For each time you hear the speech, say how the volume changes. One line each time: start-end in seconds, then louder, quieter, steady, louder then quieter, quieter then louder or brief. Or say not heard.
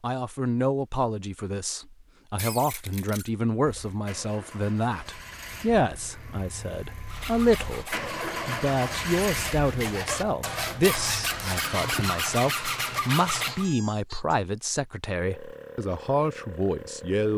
0.0-17.3 steady.